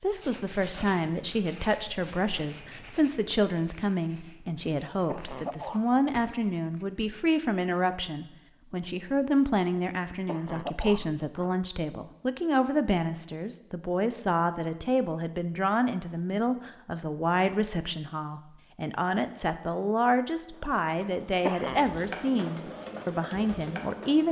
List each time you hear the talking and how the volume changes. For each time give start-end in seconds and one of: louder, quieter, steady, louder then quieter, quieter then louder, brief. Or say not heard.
0.0-24.2 steady.